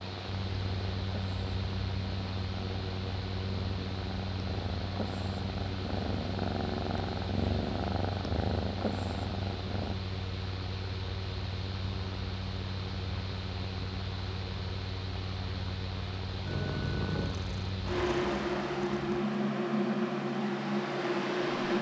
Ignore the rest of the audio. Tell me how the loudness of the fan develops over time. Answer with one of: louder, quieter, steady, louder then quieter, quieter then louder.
louder.